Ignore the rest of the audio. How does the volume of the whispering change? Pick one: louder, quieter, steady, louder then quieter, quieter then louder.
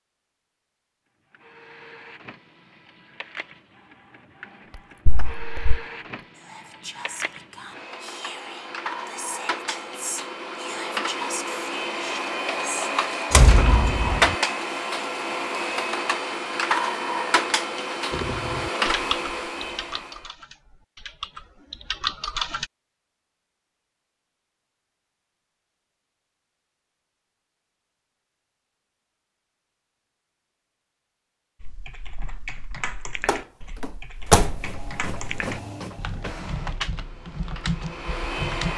louder.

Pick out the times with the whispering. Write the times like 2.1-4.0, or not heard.
4.7-12.9.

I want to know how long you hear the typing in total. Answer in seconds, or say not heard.
12 s.